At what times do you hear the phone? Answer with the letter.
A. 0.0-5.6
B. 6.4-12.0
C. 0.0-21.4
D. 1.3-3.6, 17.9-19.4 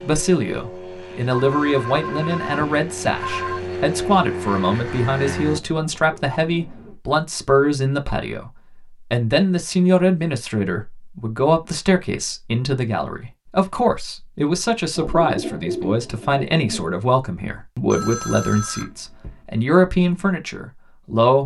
D.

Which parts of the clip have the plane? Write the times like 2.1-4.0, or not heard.
0.0-5.6.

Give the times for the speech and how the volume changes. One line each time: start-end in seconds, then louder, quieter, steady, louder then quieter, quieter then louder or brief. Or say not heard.
0.0-21.4 steady.